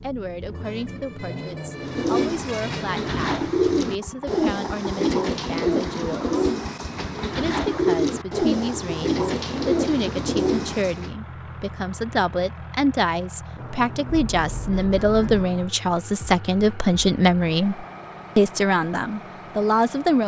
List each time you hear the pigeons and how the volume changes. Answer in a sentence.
The pigeons can be heard from 1.8 to 11.1 s, at a steady volume.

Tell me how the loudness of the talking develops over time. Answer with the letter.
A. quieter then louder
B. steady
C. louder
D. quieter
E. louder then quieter
C.